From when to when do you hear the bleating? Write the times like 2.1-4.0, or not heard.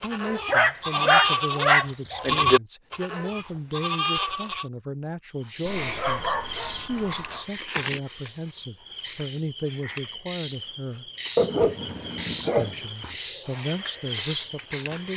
0.0-4.7.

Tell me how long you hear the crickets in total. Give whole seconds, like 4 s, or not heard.
10 s.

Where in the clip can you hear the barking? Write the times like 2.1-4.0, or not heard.
0.5-2.2, 5.7-7.5, 11.3-13.2.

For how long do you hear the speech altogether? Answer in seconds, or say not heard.
14 s.